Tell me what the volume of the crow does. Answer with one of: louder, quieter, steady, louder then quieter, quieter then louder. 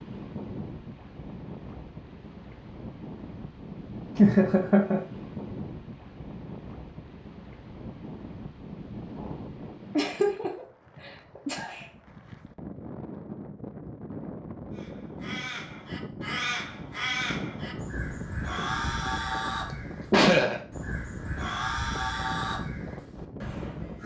steady.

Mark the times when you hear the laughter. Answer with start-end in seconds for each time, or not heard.
4.2-5.0, 9.9-11.8, 19.7-20.6.